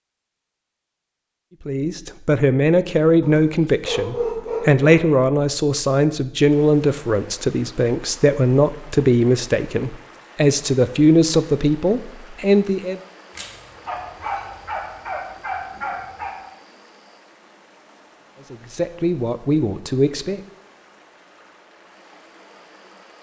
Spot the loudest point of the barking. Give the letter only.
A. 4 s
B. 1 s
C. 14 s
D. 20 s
A.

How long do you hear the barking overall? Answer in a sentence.
You can hear the barking for 5 seconds altogether.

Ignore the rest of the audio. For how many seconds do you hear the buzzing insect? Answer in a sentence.
The buzzing insect can't be heard in this clip.